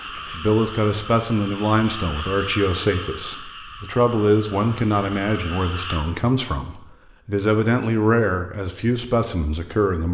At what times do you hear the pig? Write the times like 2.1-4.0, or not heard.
not heard.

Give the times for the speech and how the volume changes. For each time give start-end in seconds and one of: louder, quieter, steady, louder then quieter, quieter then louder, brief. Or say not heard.
0.1-10.0 steady.